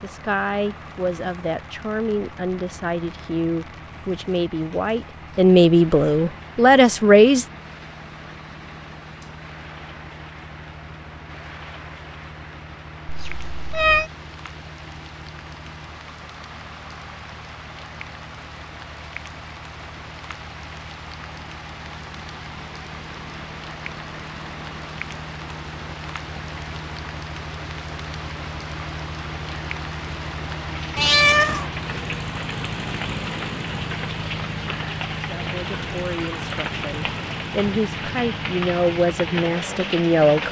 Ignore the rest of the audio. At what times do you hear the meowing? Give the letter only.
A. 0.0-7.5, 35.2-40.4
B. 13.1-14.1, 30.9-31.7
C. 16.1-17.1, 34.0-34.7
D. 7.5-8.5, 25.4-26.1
B.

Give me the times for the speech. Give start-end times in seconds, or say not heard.
0.0-7.5, 35.2-40.4.